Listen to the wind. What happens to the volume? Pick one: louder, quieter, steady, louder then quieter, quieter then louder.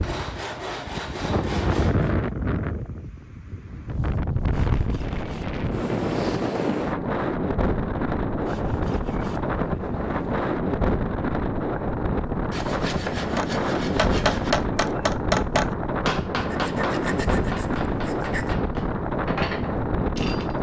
steady.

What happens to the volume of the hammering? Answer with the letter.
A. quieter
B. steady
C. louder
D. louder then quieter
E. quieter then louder
E.